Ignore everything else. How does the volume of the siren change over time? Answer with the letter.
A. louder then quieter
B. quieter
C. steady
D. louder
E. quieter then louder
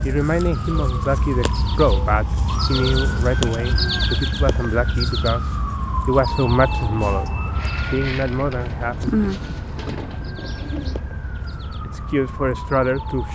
B.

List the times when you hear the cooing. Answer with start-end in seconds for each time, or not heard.
7.5-11.0.